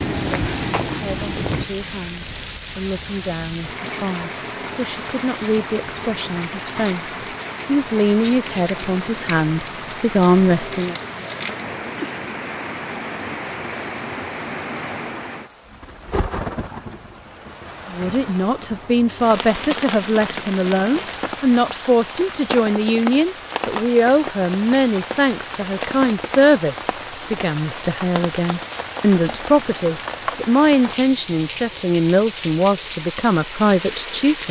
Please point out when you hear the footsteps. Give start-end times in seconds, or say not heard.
0.0-1.6.